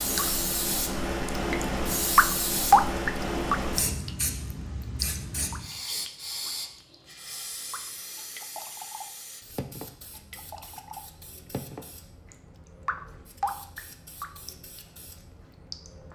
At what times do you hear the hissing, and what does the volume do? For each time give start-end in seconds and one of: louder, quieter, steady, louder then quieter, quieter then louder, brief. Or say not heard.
0.0-16.1 quieter.